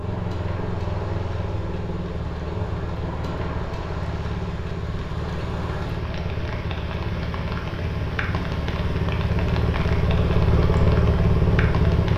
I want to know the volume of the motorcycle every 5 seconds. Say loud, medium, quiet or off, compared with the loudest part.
medium, medium, loud.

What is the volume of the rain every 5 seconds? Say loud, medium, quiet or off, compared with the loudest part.
medium, loud, loud.